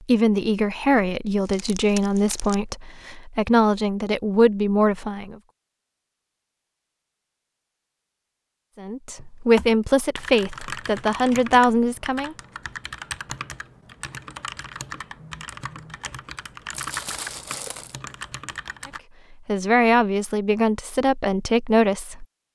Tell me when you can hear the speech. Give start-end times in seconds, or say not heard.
0.1-5.3, 8.8-12.3, 19.4-22.2.